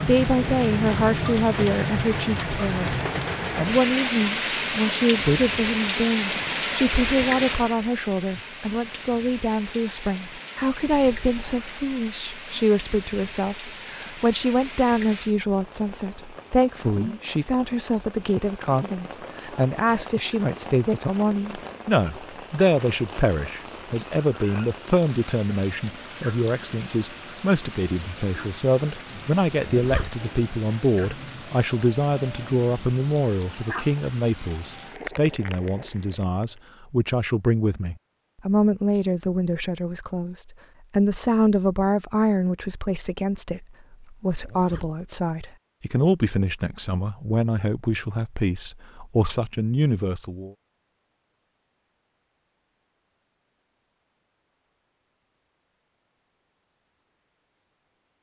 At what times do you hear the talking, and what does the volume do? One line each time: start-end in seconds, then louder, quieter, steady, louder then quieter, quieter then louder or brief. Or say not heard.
0.1-50.5 steady.